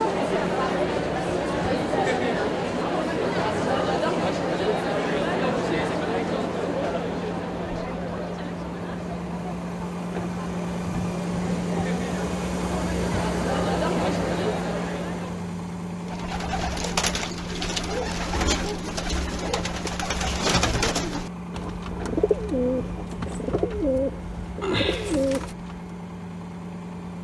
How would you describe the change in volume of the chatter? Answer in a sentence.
The loudness of the chatter goes down, then up.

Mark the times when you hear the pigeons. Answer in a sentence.
The pigeons can be heard from 16.0 to 25.9 s.